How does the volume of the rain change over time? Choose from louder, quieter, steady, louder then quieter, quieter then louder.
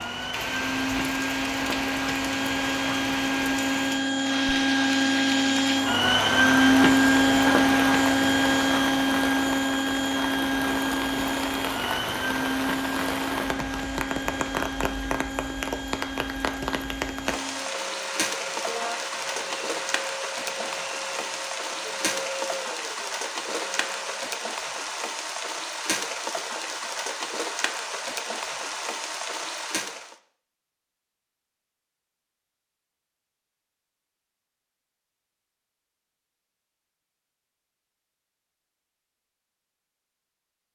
steady.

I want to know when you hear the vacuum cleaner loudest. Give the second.
7 s.